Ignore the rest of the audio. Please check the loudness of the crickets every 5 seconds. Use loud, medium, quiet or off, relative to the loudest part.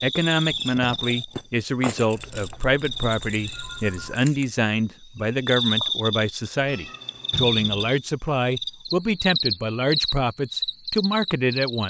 medium, loud, loud.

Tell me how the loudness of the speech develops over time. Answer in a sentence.
The loudness of the speech stays about the same.